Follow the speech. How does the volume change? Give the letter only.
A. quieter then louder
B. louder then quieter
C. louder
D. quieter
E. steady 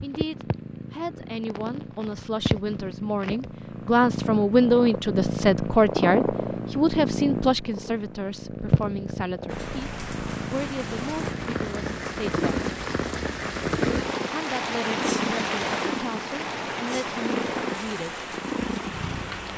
B.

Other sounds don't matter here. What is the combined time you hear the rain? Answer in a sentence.
You can hear the rain for 10 seconds altogether.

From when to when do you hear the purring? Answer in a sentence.
The purring can be heard from 0.0 to 19.5 s.